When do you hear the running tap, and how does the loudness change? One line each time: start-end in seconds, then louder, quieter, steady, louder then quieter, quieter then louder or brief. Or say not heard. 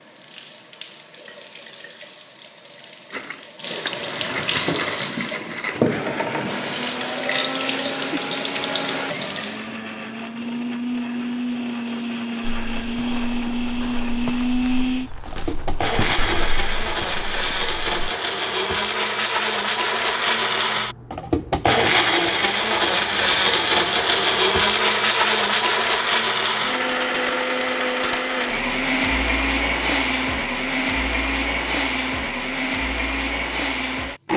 0.0-9.8 louder.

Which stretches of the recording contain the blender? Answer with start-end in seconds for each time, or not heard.
3.1-34.3.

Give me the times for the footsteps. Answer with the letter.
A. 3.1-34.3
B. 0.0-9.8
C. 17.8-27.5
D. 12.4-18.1
D.